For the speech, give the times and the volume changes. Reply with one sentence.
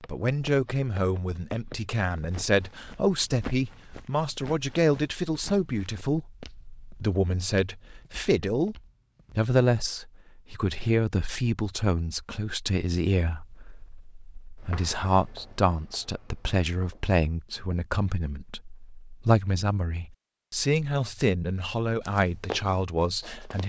The speech can be heard from 0.1 to 23.6 s, at a steady volume.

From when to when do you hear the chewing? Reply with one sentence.
You can't hear the chewing here.